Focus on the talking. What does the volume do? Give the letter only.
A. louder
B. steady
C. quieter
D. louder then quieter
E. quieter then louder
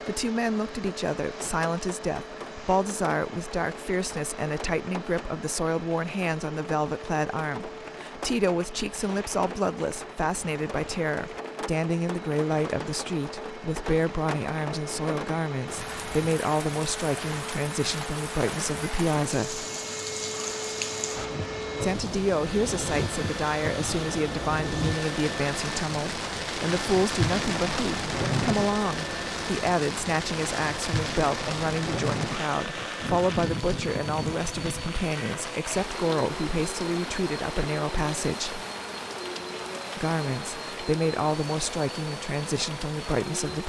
B.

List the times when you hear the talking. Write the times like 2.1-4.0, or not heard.
0.1-19.6, 21.8-38.6, 40.0-43.6.